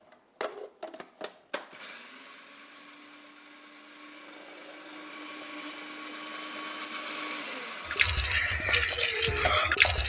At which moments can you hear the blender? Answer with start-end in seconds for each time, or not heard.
0.1-10.0.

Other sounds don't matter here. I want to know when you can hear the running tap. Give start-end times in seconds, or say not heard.
7.8-10.0.